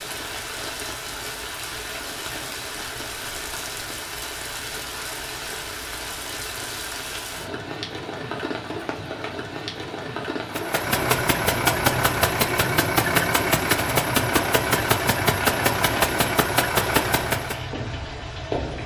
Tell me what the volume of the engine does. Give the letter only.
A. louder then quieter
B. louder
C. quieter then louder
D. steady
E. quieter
D.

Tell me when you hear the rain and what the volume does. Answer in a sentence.
You can hear the rain from 0.0 to 18.8 s, at a steady volume.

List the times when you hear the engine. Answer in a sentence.
The engine can be heard from 10.4 to 17.6 s.